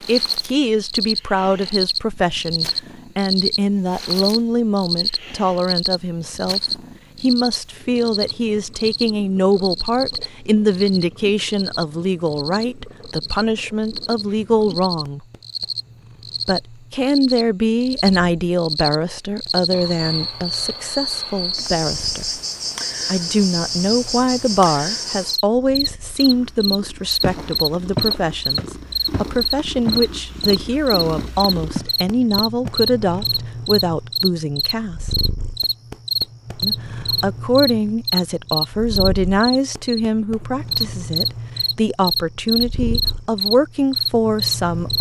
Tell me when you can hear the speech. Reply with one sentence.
The speech can be heard from 0.1 to 15.2 s, from 16.4 to 22.2 s, from 23.1 to 35.2 s and from 36.6 to 44.9 s.